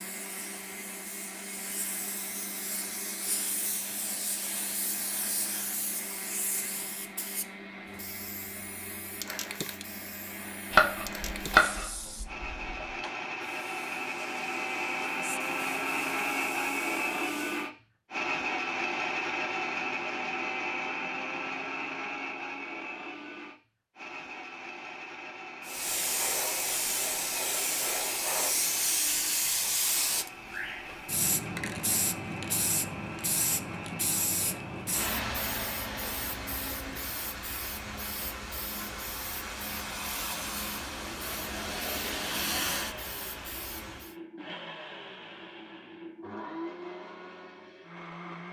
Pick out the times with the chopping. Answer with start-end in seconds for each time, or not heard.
10.7-12.8.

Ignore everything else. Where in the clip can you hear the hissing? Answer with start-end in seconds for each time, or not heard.
0.0-17.7, 25.6-44.1.